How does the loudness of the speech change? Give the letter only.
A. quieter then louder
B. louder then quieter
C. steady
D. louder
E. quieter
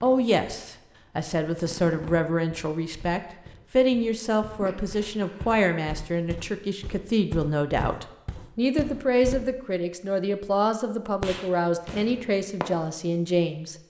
C.